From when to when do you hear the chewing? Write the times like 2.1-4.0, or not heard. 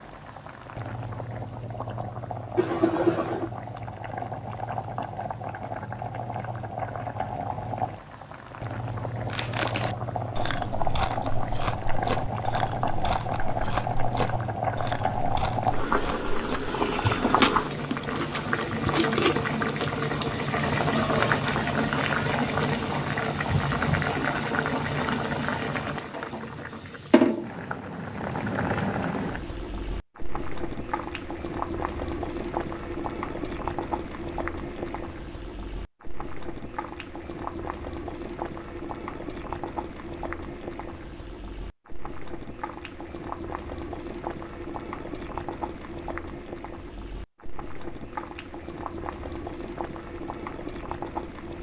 9.3-18.6.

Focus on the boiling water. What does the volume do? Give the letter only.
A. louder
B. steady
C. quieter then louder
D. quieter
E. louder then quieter
E.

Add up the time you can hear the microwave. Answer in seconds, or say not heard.
not heard.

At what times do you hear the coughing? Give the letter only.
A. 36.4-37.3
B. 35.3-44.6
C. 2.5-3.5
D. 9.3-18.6
C.